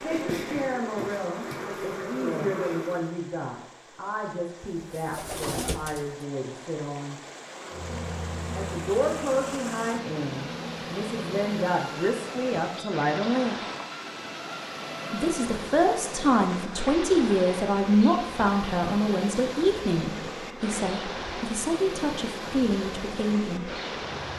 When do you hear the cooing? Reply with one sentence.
The cooing can be heard from 4.8 to 6.2 s.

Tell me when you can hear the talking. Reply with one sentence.
The talking can be heard from 0.0 to 7.2 s, from 8.5 to 13.6 s and from 15.1 to 23.7 s.